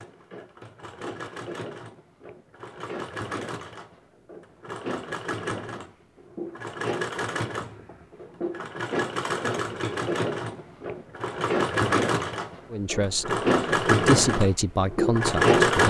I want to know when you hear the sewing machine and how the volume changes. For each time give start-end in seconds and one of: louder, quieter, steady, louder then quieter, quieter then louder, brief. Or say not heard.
0.0-15.8 louder.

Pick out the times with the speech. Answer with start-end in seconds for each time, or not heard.
12.7-15.8.